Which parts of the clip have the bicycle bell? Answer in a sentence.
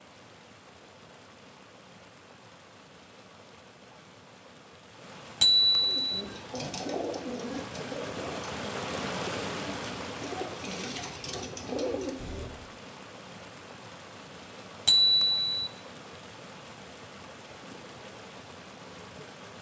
The bicycle bell can be heard from 5.4 to 6.2 s and from 14.8 to 15.7 s.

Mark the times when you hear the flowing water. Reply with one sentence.
The flowing water can be heard from 0.0 to 19.5 s.